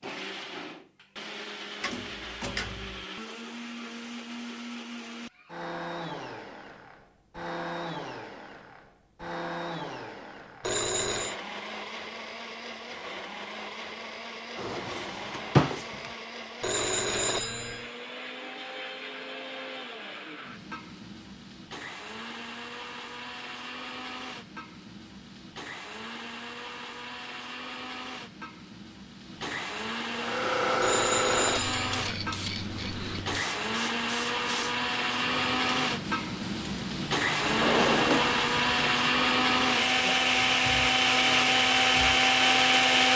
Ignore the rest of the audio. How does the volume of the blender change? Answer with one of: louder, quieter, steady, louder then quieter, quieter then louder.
louder.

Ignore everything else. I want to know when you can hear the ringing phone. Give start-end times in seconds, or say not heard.
10.6-11.3, 16.6-17.8, 30.8-32.0.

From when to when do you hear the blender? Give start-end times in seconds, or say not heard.
0.0-43.1.